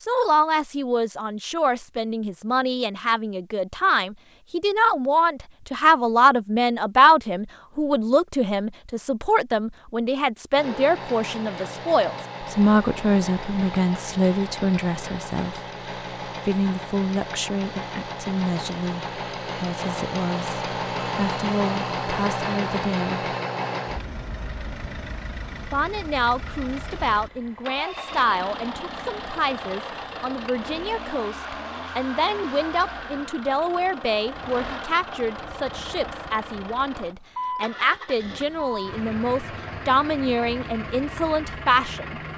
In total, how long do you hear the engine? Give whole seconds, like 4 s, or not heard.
32 s.